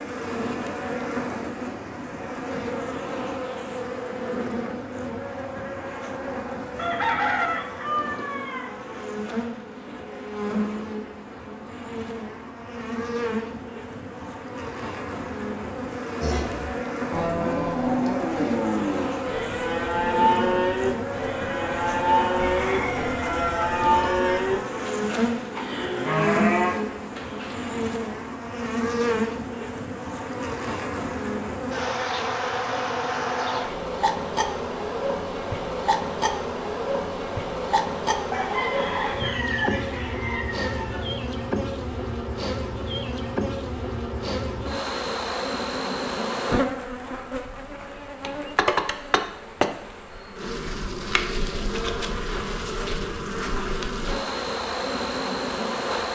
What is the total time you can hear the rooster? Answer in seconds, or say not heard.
7 s.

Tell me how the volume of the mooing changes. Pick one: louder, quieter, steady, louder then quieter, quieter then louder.
steady.